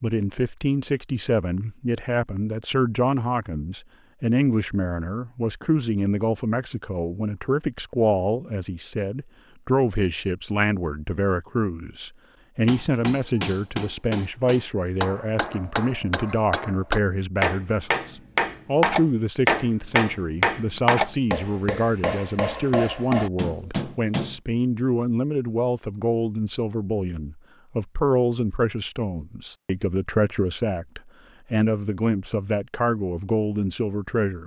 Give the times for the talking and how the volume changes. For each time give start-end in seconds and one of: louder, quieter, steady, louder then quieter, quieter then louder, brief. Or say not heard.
0.0-34.4 steady.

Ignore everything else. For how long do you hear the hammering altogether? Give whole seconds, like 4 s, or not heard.
12 s.